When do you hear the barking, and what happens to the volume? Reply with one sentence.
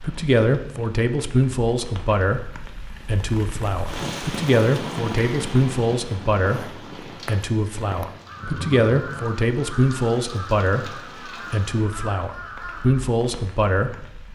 The barking can't be heard in this clip.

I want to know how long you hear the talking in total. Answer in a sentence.
The talking can be heard for 14 seconds in total.